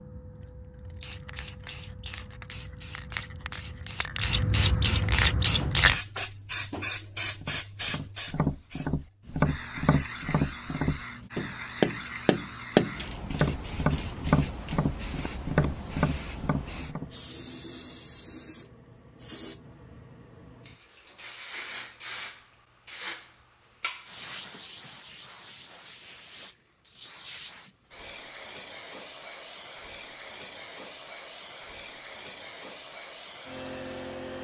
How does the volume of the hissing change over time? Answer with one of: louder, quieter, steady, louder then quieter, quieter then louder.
quieter.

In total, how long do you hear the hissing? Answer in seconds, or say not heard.
34 s.